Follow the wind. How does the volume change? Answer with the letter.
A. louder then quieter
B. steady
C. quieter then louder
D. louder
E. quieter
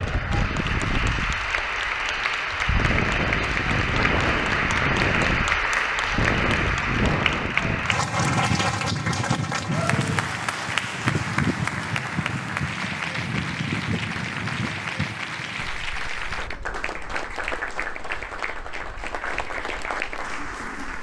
E.